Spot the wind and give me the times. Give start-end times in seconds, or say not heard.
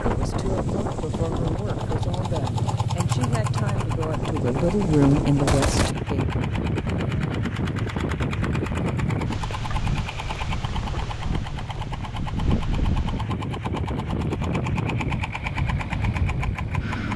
0.0-17.1.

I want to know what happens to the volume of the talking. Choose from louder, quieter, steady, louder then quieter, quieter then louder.
louder.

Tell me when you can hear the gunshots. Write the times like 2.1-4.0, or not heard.
4.5-6.0.